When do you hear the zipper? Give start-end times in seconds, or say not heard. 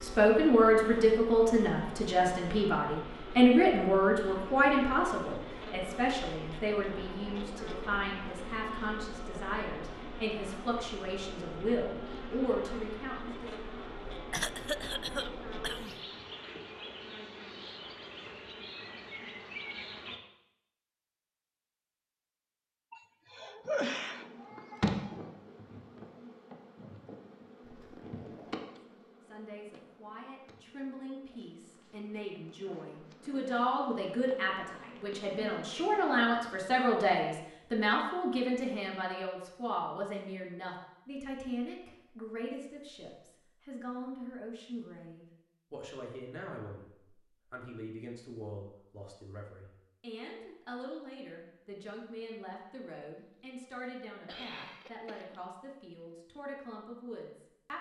27.6-28.6.